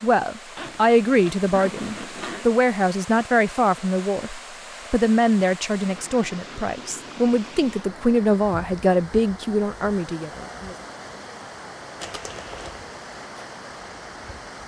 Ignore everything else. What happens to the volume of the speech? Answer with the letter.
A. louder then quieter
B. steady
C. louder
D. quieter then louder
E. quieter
B.